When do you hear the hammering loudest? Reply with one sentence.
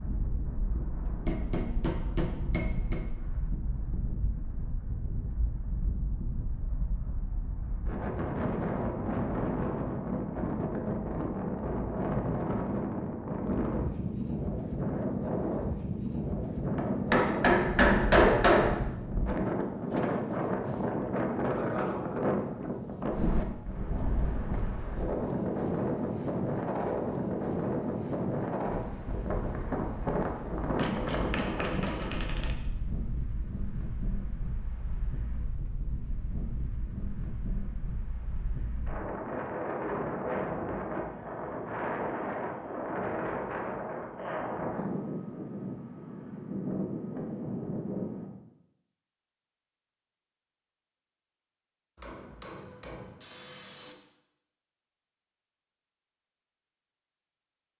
The loudest moment of the hammering is at 18 seconds.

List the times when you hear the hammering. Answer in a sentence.
The hammering can be heard from 1.1 to 3.0 s, from 16.8 to 18.8 s, from 30.8 to 32.5 s and from 52.0 to 54.0 s.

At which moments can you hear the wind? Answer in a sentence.
You can hear the wind from 0.0 to 48.3 s.